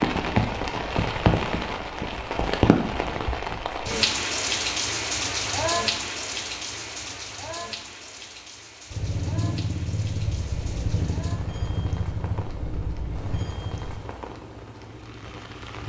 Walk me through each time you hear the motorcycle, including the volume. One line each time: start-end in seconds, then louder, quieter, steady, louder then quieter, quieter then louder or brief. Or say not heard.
8.9-15.8 quieter.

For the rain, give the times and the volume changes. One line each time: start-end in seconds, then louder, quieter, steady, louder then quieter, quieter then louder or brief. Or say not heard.
0.0-15.8 quieter.